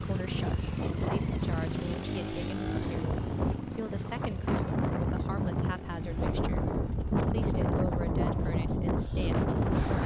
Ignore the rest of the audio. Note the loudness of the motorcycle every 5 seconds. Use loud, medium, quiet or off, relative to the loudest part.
loud, medium.